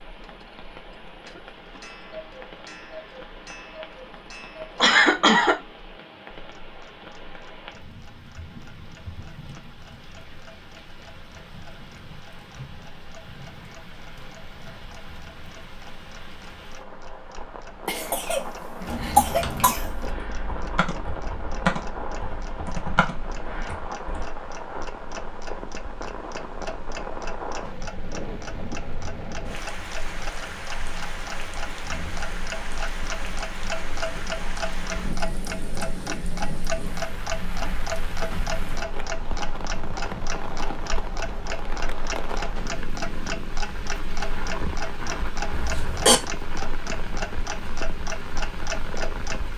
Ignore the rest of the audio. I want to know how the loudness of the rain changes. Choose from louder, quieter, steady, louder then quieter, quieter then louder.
louder.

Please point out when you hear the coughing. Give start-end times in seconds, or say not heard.
4.8-5.5, 17.9-20.1, 45.5-46.2.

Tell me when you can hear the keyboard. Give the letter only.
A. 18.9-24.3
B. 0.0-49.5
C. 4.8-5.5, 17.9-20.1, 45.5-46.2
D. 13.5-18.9
A.